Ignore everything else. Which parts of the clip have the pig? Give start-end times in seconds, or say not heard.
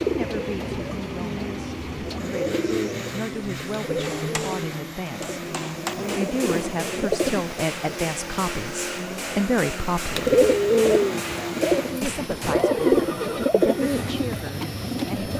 not heard.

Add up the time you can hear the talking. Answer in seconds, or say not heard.
14 s.